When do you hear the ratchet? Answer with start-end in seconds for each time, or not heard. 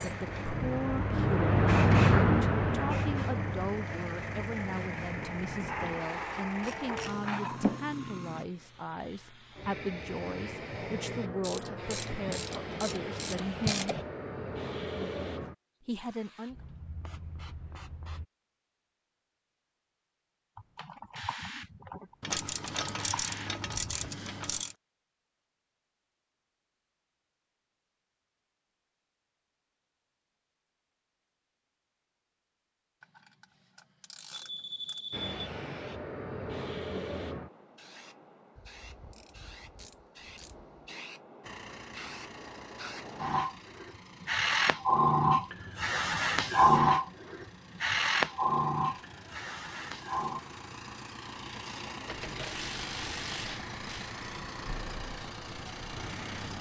5.7-7.3, 11.4-14.1, 22.2-24.8, 33.0-35.0, 38.5-40.8, 51.5-54.1.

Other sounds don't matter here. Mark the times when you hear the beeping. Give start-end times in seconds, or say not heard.
34.3-35.5.